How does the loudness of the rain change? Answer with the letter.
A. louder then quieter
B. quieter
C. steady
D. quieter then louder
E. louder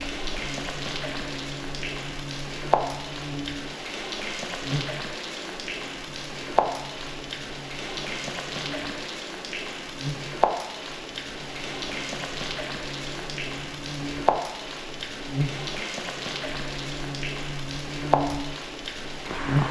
C.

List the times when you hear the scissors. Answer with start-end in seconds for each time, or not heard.
not heard.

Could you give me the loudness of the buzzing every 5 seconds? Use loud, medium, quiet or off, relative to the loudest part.
medium, quiet, medium, loud.